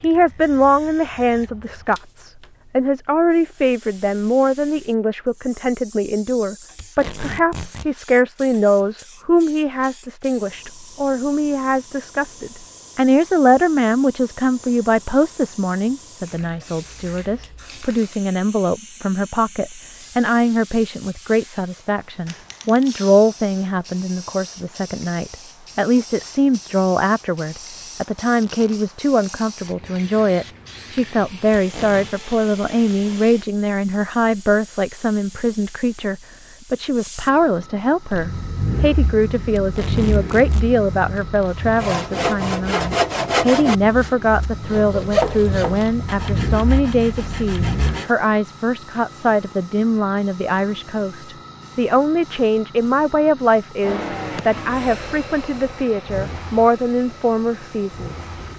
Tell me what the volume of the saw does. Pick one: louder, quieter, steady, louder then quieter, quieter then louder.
quieter.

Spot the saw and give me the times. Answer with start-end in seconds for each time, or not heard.
41.8-48.1.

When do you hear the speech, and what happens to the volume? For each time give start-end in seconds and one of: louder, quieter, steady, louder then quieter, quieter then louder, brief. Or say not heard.
0.0-58.2 steady.